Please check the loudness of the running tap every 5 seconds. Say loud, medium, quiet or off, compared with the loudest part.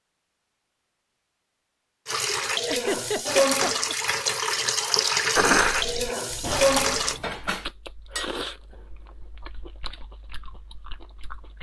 loud, loud, off.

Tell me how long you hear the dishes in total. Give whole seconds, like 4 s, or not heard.
3 s.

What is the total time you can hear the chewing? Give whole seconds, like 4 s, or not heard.
5 s.